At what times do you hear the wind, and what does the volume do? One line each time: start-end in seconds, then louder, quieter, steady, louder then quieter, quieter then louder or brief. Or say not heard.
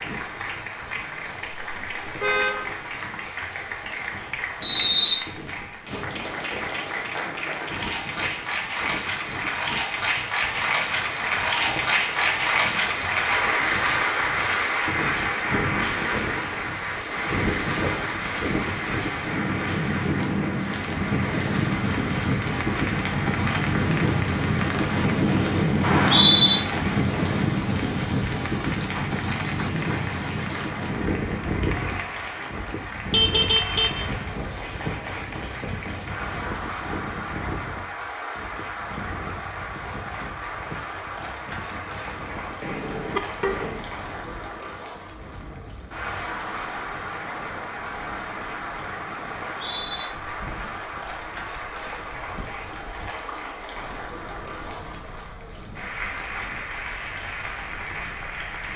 0.0-58.7 louder then quieter.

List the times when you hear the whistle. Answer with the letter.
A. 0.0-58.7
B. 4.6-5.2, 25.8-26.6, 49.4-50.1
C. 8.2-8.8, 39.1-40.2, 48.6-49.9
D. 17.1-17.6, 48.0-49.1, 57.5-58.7
B.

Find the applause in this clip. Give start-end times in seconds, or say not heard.
0.0-58.7.